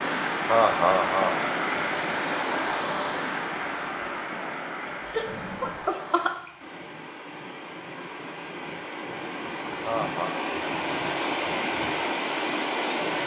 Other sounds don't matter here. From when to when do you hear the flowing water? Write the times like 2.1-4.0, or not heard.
0.0-13.2.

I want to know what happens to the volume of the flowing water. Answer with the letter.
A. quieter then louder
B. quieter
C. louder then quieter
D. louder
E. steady
A.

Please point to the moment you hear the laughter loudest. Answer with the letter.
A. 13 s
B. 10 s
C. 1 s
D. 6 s
C.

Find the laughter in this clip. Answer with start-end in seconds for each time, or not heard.
0.0-1.5, 5.1-6.5, 9.4-10.3.